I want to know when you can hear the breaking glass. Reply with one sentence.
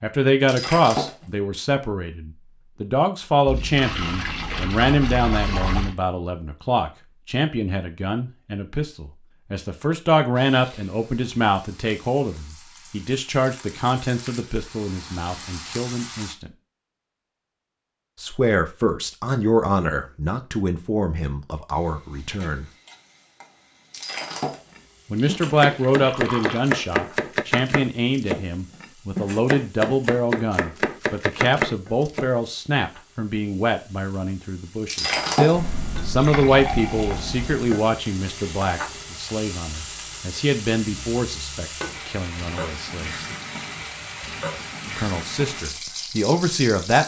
You can hear the breaking glass from 0.5 to 1.1 s, from 23.9 to 24.6 s and from 34.9 to 35.5 s.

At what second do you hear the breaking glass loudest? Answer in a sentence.
The volume of the breaking glass peaks at 35 seconds.